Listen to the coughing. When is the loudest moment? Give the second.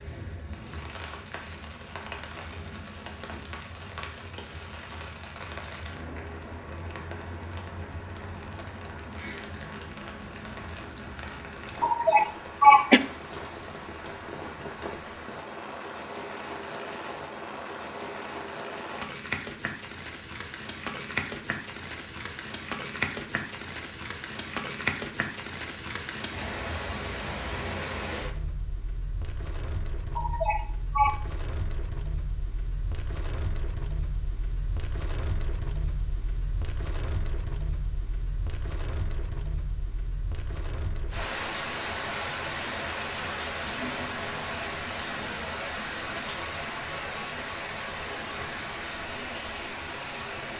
13 s.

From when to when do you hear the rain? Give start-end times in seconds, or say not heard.
0.0-50.5.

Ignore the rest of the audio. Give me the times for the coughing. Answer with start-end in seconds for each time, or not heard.
11.8-13.0, 30.1-31.1.